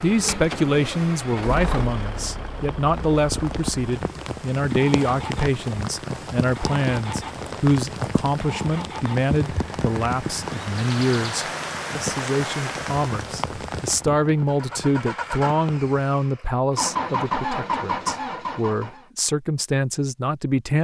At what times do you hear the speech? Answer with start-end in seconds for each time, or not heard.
0.0-20.8.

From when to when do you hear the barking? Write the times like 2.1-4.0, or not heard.
not heard.